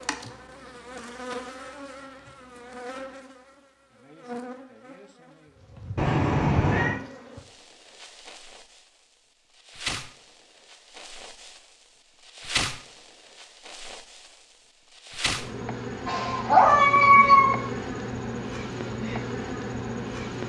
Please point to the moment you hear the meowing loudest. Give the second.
17 s.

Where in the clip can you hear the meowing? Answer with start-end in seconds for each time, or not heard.
6.0-7.0, 16.1-17.6.